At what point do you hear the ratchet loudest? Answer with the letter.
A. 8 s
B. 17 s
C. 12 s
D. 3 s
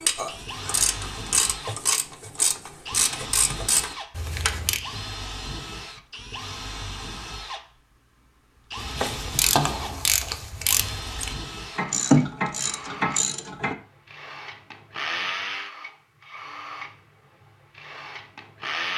C.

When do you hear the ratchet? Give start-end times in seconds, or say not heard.
0.0-4.8, 8.8-13.8.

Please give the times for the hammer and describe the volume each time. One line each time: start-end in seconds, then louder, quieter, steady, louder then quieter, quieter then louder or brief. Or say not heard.
not heard.